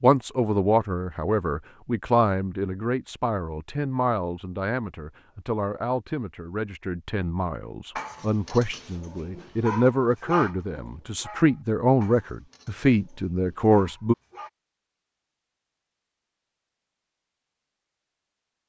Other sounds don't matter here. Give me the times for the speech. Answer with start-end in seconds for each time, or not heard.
0.0-14.2.